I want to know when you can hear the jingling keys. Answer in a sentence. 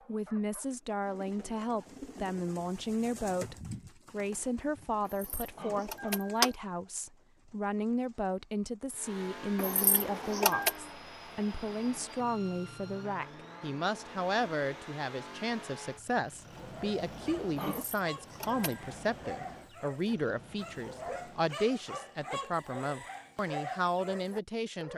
You can hear the jingling keys from 5.0 to 6.5 s, from 9.6 to 10.8 s and from 17.7 to 18.8 s.